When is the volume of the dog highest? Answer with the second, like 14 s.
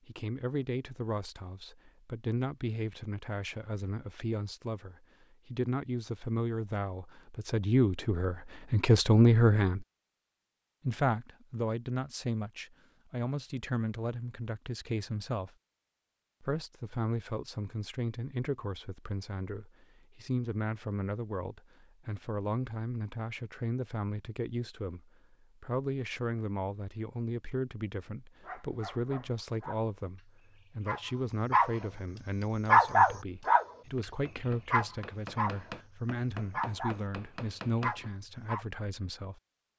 33 s.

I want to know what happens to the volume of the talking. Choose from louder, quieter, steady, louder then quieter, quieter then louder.
louder then quieter.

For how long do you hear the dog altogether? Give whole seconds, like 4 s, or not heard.
6 s.